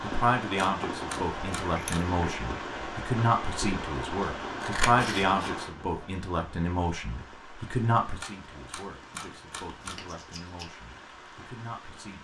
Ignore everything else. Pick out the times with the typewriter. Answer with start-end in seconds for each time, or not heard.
0.6-2.0, 8.2-10.1.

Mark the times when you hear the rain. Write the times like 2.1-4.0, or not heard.
0.0-12.2.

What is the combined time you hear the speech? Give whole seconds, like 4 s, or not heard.
12 s.